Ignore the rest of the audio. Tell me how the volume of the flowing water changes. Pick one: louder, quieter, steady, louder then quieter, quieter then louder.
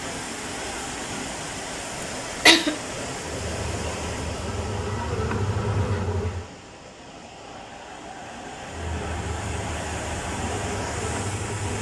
quieter then louder.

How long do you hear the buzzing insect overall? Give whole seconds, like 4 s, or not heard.
6 s.